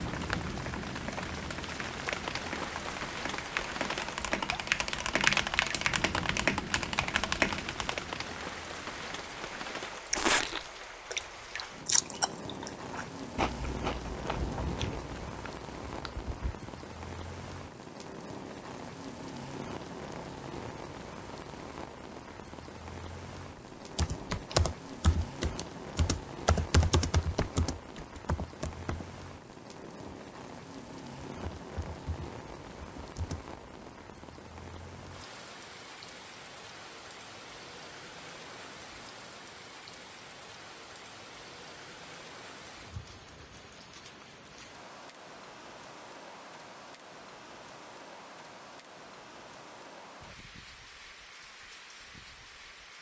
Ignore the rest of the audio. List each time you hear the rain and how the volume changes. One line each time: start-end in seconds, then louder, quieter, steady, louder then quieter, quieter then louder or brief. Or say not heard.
0.0-52.9 quieter.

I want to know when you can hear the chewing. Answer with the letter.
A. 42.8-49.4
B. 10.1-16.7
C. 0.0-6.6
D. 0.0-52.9
B.